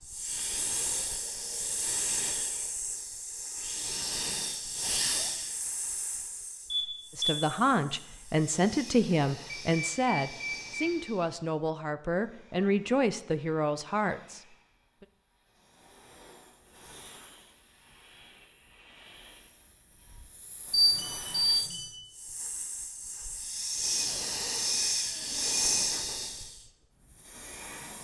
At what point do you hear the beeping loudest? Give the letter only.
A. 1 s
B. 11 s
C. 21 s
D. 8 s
C.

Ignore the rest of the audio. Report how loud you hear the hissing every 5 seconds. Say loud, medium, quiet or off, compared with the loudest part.
loud, medium, quiet, quiet, loud, loud.